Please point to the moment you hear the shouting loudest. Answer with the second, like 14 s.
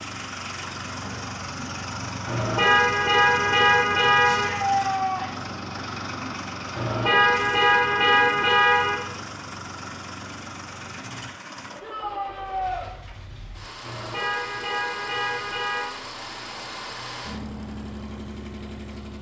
5 s.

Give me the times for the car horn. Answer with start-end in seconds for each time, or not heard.
2.2-4.5, 6.7-9.1, 13.8-15.9.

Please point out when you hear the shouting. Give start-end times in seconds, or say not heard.
4.2-5.5, 11.8-12.8.